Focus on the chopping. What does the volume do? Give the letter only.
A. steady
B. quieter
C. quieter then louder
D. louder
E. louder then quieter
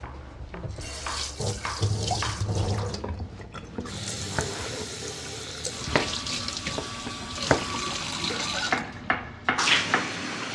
D.